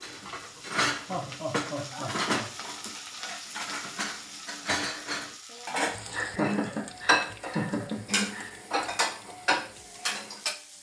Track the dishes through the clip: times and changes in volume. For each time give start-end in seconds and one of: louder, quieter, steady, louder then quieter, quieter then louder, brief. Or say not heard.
0.0-10.6 quieter then louder.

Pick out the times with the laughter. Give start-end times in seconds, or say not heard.
1.1-2.5, 6.1-8.6.